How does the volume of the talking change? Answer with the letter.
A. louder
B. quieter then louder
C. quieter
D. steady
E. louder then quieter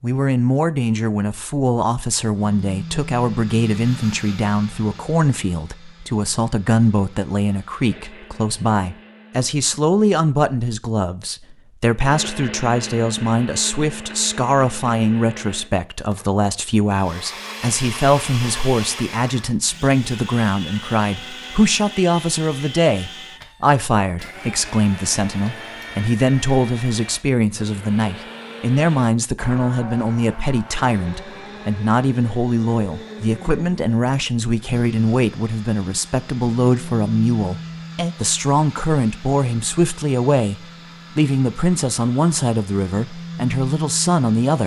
D.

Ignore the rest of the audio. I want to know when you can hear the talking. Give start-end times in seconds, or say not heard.
0.0-44.6.